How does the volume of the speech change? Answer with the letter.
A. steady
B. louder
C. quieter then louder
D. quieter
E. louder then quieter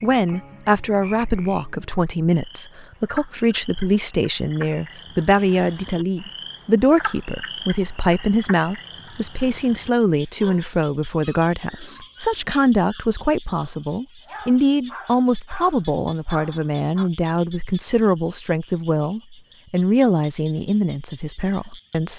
A.